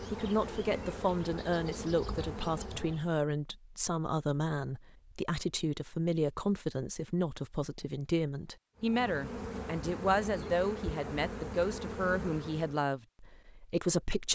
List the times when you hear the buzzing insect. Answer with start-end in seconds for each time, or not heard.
0.0-3.1, 8.8-12.8.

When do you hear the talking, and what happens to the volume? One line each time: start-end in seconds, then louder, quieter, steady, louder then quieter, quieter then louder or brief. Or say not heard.
0.0-14.2 steady.